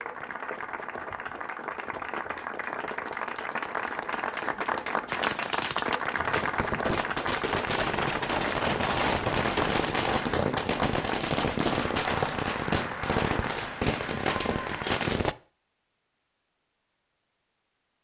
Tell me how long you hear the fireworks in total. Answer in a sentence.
You can hear the fireworks for 10 seconds altogether.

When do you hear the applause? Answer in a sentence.
The applause can be heard from 0.0 to 15.0 s.